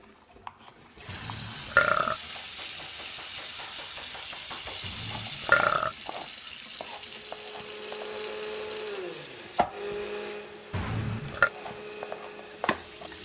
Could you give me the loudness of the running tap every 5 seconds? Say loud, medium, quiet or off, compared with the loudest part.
loud, loud, medium.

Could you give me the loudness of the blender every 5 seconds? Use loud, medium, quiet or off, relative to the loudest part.
off, loud, loud.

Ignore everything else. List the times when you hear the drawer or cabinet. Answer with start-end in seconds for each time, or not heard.
not heard.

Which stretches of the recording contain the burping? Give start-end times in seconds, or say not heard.
1.1-2.2, 4.8-6.0, 10.7-11.5.